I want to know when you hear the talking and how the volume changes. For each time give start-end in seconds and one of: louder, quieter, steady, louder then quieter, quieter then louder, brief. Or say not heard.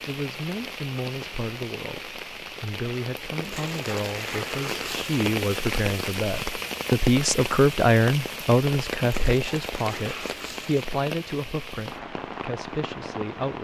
0.1-13.6 louder then quieter.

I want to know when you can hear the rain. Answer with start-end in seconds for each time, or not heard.
0.0-13.6.